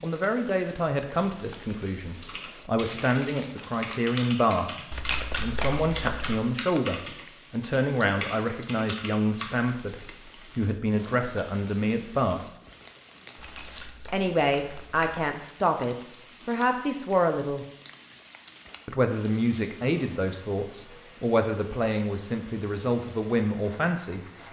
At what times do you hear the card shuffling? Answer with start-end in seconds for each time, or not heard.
4.9-6.4, 13.3-15.2.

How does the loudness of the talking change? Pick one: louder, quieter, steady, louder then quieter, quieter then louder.
steady.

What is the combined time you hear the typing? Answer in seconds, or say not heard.
7 s.